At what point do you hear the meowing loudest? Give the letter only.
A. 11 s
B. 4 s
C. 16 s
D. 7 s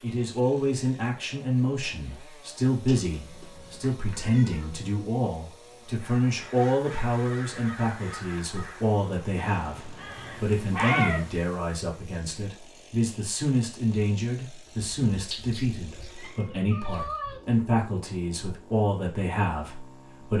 A.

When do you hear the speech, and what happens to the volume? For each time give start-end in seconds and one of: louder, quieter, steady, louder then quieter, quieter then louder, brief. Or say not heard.
0.0-20.3 steady.